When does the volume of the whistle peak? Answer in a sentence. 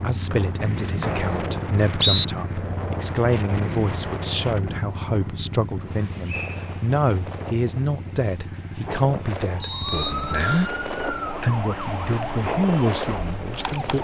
The loudest moment of the whistle is at 2 seconds.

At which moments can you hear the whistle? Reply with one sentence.
You can hear the whistle from 0.3 to 2.2 s, from 6.2 to 6.7 s and from 9.6 to 10.7 s.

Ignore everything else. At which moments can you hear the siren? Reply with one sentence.
You can hear the siren from 9.5 to 14.0 s.